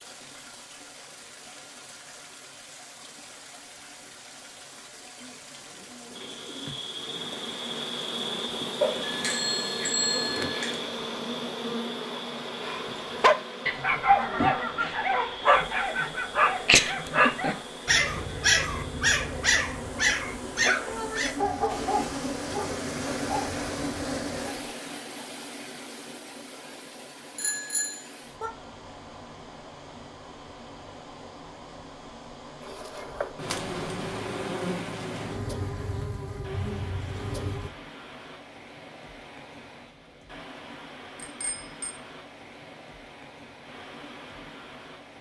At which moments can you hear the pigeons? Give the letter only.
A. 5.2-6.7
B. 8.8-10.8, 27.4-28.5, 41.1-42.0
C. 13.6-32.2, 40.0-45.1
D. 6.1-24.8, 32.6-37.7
A.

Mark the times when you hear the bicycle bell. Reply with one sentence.
The bicycle bell can be heard from 8.8 to 10.8 s, from 27.4 to 28.5 s and from 41.1 to 42.0 s.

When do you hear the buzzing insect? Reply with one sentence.
You can hear the buzzing insect from 6.1 to 24.8 s and from 32.6 to 37.7 s.